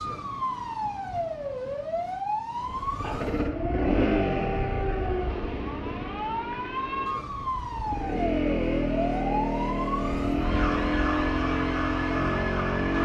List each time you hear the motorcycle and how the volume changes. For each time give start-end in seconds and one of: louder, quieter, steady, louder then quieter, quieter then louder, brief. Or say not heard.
2.5-12.9 quieter then louder.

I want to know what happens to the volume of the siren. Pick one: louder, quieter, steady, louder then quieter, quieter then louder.
steady.